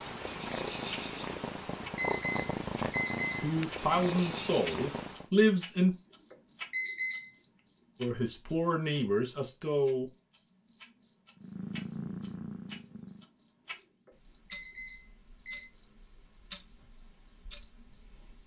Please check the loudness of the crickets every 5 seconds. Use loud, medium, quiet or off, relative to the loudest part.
loud, medium, quiet, quiet.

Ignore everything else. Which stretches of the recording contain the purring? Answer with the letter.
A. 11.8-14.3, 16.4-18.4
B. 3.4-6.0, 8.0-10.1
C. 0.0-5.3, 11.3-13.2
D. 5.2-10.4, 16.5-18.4
C.